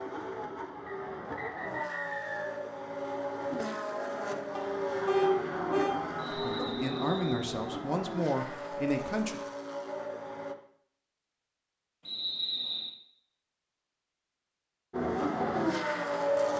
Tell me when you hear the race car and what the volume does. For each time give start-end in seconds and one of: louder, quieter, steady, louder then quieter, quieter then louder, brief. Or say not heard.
0.0-10.6 louder then quieter
14.9-16.5 brief.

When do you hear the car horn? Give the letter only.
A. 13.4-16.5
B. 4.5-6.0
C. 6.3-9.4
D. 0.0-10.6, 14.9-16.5
B.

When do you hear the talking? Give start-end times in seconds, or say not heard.
6.3-9.4.